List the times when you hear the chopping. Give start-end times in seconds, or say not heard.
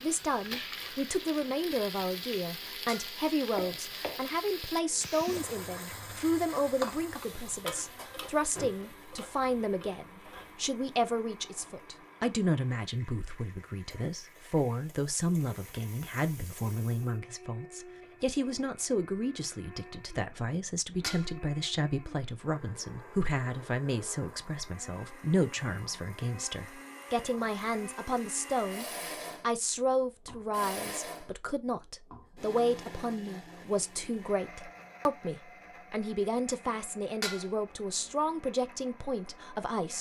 not heard.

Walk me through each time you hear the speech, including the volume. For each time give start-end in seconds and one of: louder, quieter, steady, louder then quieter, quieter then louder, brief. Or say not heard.
0.0-39.9 steady.